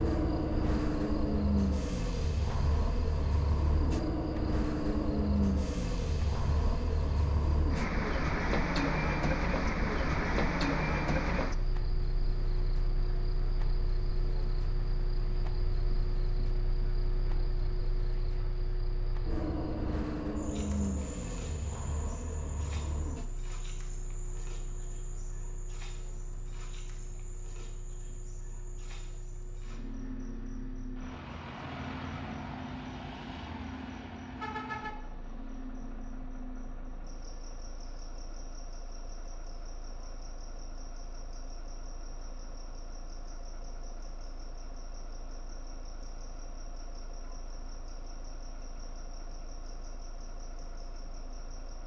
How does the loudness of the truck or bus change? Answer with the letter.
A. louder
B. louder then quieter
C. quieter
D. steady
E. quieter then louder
C.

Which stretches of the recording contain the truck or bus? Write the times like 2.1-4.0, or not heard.
0.0-51.8.